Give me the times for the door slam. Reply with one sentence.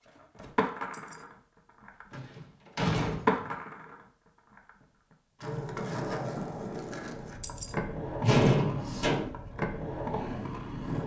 You can hear the door slam from 2.1 to 3.5 s and from 8.2 to 9.3 s.